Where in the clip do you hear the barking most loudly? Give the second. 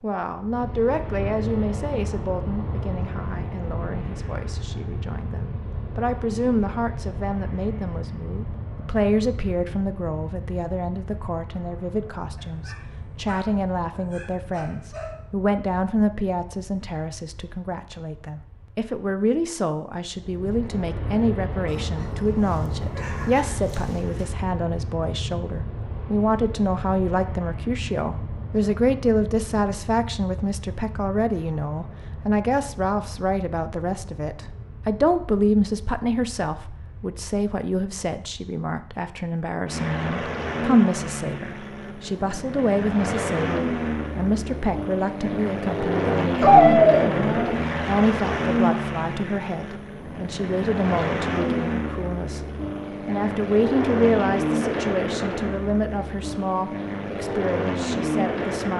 47 s.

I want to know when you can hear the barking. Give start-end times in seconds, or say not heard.
12.3-15.2, 21.6-24.2, 46.4-47.6.